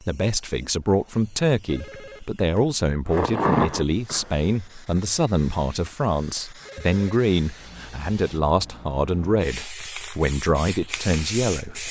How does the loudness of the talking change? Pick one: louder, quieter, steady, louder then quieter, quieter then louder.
steady.